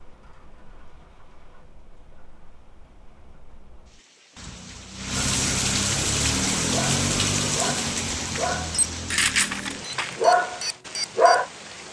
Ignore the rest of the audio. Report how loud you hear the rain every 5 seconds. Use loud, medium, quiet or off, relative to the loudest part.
quiet, loud, quiet.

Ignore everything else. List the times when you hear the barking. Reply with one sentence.
You can hear the barking from 6.7 to 11.4 s.